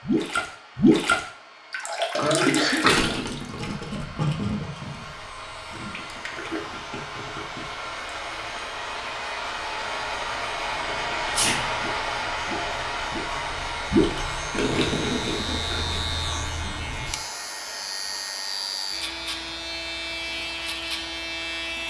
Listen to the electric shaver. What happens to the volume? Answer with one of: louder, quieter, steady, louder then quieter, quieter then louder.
louder.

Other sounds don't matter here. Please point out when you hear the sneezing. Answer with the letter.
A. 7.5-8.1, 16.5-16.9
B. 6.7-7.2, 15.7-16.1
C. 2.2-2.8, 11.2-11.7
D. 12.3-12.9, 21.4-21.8
C.